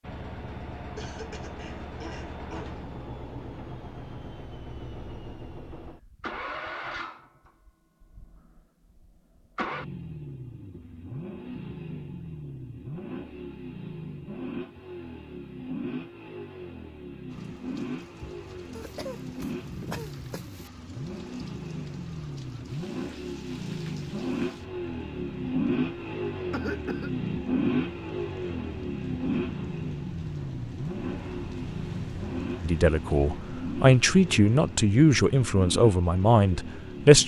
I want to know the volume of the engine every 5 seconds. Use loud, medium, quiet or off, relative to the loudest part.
medium, medium, medium, medium, medium, loud, medium, medium.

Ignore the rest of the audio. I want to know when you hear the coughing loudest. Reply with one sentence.
The volume of the coughing peaks at 27 seconds.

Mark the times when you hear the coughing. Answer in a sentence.
The coughing can be heard from 0.9 to 2.8 s, from 18.8 to 20.7 s and from 26.5 to 27.1 s.